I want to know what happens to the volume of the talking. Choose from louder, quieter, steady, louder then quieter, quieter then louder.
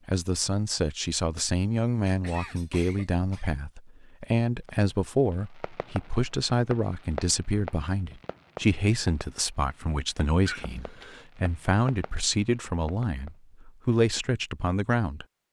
steady.